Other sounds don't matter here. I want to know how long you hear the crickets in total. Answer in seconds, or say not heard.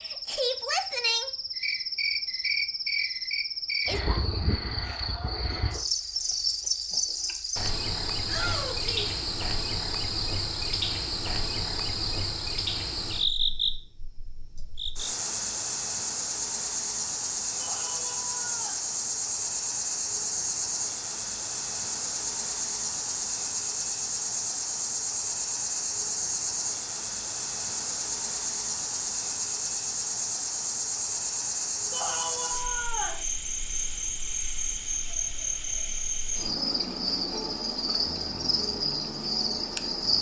40 s.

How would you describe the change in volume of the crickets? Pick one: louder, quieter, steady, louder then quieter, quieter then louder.
steady.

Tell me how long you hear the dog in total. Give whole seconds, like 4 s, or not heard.
not heard.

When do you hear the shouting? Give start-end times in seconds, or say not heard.
8.2-9.2, 17.6-18.8, 31.9-33.2.